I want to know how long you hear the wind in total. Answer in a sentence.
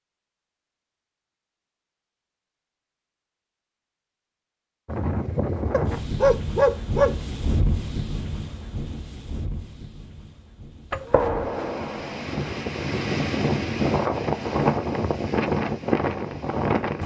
The wind can be heard for 12 seconds in total.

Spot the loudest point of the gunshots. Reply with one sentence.
The volume of the gunshots peaks at 11 seconds.